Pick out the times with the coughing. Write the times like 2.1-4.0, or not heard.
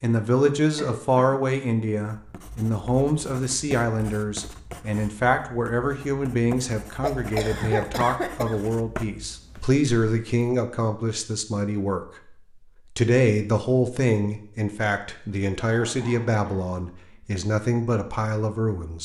0.8-1.4, 7.0-8.6, 15.7-17.2.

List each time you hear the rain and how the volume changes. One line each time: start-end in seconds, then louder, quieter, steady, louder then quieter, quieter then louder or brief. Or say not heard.
not heard.